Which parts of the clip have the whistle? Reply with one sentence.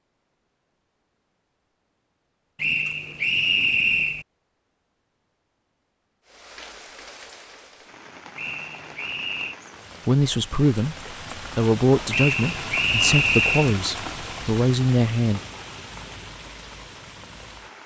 You can hear the whistle from 2.5 to 4.2 s, from 8.3 to 9.6 s and from 12.1 to 13.8 s.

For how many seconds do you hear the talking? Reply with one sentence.
You can hear the talking for 5 seconds altogether.